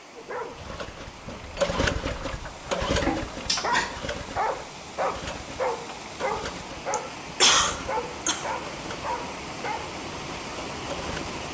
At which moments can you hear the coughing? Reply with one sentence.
The coughing can be heard from 3.0 to 4.0 s and from 6.9 to 8.4 s.